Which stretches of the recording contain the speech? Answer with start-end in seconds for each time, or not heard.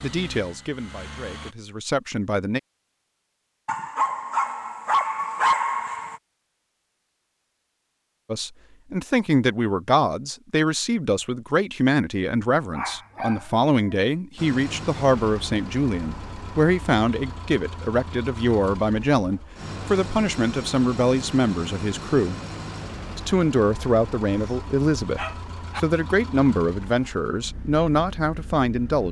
0.0-2.6, 8.2-22.4, 23.1-29.0.